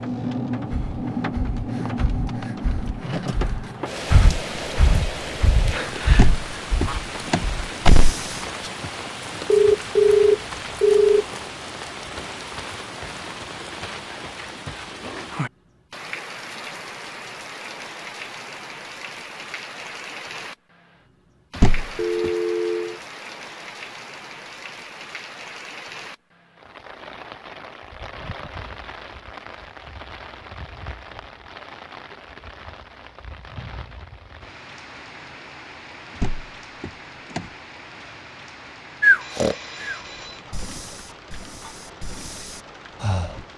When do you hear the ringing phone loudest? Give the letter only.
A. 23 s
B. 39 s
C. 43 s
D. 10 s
D.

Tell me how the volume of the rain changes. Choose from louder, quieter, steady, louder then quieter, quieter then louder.
quieter.